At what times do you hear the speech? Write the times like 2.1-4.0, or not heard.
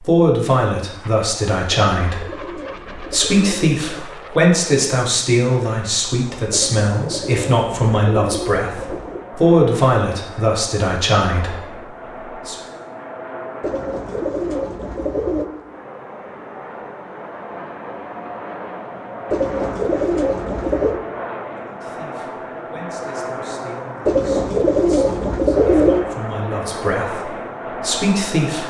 0.0-12.6, 21.6-28.6.